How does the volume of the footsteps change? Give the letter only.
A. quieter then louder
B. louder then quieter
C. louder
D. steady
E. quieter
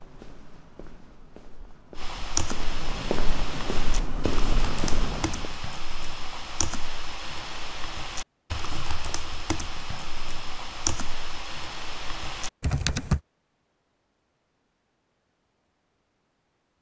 C.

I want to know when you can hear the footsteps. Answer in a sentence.
You can hear the footsteps from 0.0 to 5.5 s.